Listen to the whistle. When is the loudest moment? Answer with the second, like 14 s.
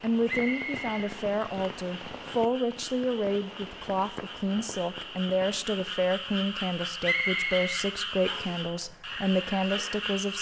7 s.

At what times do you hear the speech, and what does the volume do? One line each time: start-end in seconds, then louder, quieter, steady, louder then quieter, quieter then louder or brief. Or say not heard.
0.0-10.3 steady.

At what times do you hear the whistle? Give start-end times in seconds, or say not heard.
0.2-1.1, 7.0-8.6.